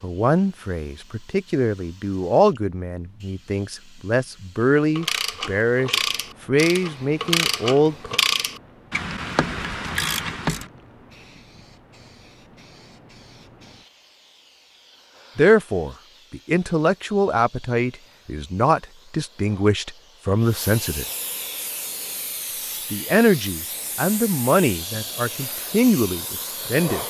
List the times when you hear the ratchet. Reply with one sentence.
The ratchet can be heard from 5.0 to 10.7 s.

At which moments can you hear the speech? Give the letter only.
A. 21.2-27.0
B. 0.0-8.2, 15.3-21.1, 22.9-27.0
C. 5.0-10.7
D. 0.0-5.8
B.